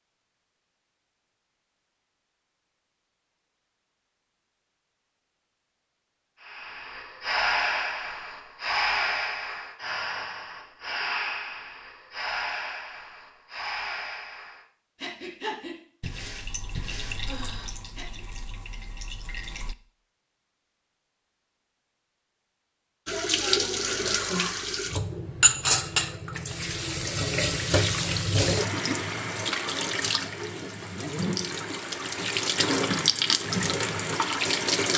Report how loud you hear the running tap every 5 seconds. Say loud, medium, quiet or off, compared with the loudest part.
off, off, off, quiet, loud, loud, loud.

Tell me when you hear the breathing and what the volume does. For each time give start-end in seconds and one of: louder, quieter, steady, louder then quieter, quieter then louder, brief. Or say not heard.
6.4-18.2 quieter.